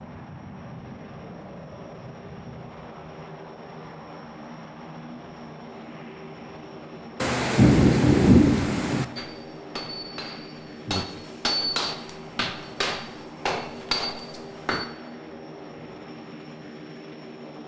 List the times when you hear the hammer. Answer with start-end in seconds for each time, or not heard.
9.2-14.8.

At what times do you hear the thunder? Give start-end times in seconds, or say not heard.
7.2-9.1.